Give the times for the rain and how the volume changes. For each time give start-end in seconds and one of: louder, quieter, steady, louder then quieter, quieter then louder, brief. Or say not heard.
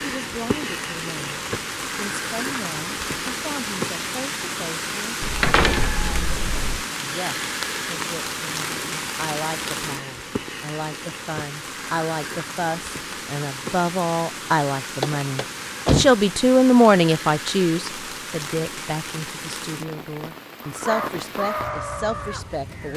0.0-22.9 quieter.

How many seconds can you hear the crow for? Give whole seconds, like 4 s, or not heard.
2 s.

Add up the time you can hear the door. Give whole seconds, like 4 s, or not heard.
2 s.